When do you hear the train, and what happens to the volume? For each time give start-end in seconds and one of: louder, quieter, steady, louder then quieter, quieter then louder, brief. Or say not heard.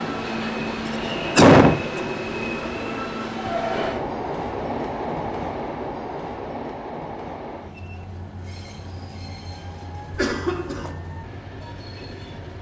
0.0-12.5 quieter.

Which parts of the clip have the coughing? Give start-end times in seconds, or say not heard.
0.8-2.0, 10.1-10.9.